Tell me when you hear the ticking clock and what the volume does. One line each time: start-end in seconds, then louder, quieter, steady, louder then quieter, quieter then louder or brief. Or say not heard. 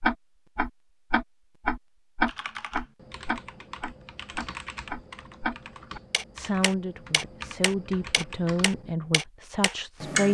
0.0-10.3 quieter.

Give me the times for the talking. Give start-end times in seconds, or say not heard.
6.3-10.3.